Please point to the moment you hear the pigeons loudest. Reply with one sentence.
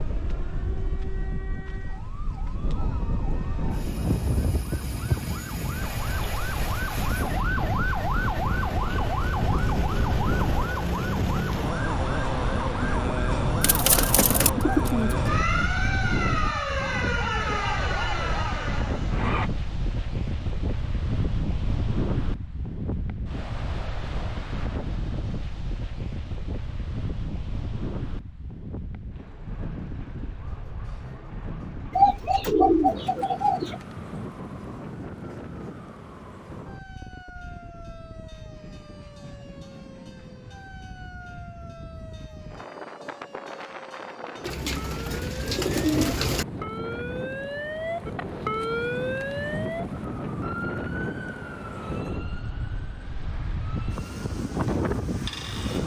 The loudest moment of the pigeons is at 33 seconds.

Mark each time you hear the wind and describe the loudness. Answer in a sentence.
The wind can be heard from 0.0 to 55.8 s, getting quieter then louder.